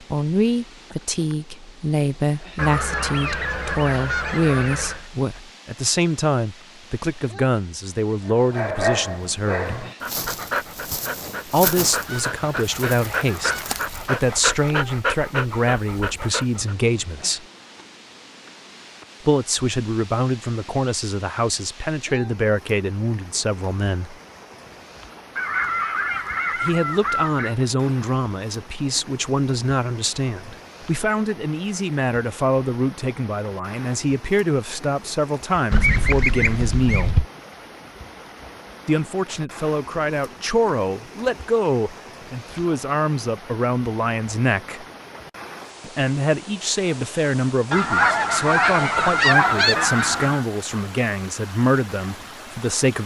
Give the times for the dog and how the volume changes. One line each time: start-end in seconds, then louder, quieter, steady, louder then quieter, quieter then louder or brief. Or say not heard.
8.2-16.8 steady.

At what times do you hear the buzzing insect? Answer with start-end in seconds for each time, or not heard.
not heard.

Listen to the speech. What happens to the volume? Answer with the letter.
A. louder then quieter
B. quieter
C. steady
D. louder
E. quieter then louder
C.